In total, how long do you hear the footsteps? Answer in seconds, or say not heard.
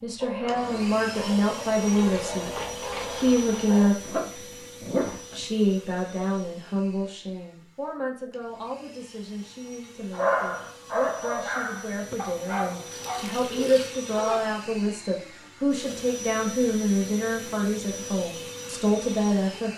not heard.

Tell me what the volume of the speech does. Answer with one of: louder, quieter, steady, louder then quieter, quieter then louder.
quieter then louder.